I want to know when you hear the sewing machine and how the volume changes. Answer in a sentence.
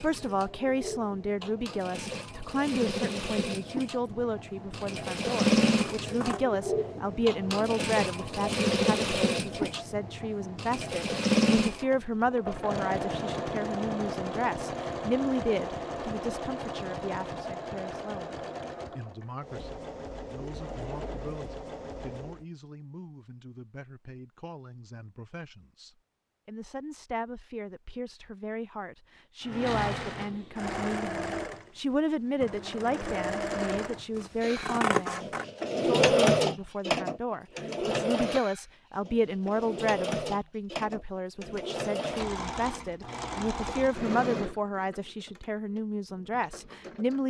You can hear the sewing machine from 0.0 to 22.4 s, getting louder then quieter; and from 29.4 to 47.2 s, getting louder then quieter.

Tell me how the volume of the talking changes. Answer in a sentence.
The loudness of the talking goes down, then up.